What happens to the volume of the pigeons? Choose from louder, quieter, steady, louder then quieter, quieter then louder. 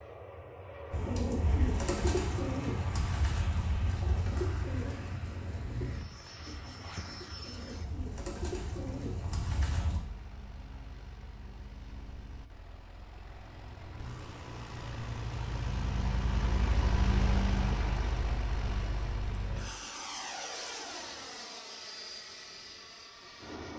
quieter then louder.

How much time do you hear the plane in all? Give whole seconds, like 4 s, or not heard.
24 s.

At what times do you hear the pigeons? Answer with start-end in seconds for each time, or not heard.
0.9-10.0.